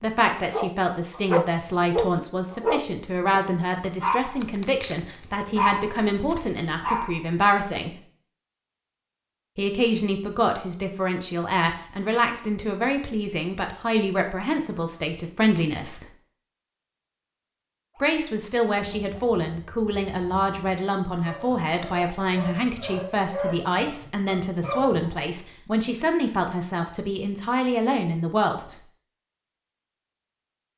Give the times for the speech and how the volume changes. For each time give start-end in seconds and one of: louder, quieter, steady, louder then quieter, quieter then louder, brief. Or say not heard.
0.0-8.0 steady
9.6-16.1 steady
18.0-28.8 steady.